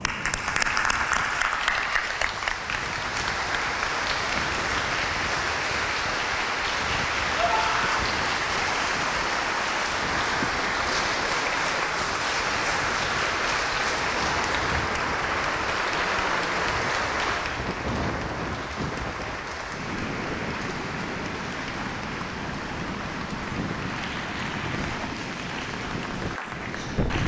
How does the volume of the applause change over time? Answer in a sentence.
The volume of the applause goes down.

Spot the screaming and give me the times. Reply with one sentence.
The screaming can be heard from 7.3 to 8.0 s.